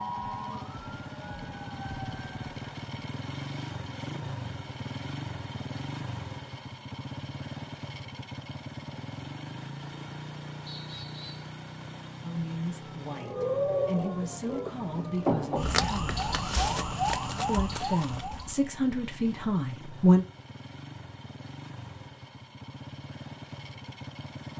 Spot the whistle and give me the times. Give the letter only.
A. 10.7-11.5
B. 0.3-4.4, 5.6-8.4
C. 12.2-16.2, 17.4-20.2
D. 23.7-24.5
A.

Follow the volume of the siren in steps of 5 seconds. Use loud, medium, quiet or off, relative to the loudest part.
medium, off, loud, loud, off.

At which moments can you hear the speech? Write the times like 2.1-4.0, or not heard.
12.2-16.2, 17.4-20.2.